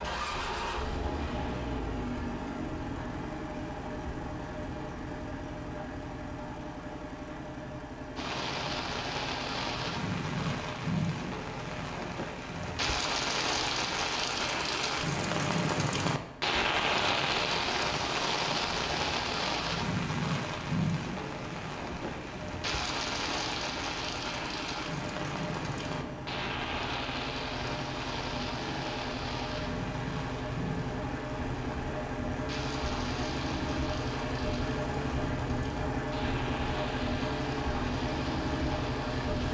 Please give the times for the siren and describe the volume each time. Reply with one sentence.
The siren can't be heard in this clip.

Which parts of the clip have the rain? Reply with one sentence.
You can hear the rain from 8.2 to 39.4 s.